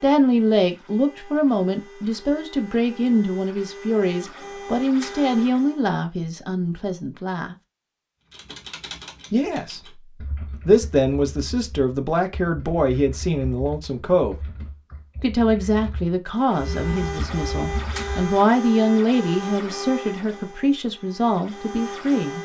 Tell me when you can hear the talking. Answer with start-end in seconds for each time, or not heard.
0.0-7.5, 9.3-10.0, 10.7-14.3, 15.2-22.4.